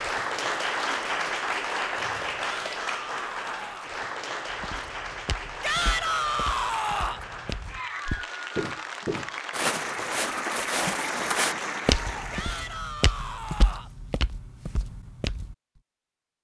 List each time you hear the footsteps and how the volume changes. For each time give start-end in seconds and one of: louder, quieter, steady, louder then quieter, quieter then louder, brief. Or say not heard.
4.5-15.6 louder then quieter.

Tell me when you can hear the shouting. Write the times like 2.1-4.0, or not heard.
2.6-4.0, 5.6-7.2, 12.3-13.9.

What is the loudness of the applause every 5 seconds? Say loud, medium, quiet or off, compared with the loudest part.
loud, medium, loud, off.